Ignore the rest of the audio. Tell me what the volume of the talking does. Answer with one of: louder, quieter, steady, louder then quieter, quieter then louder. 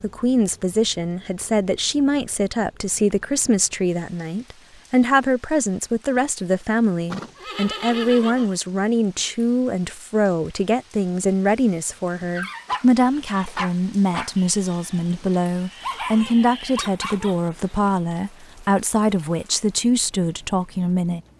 steady.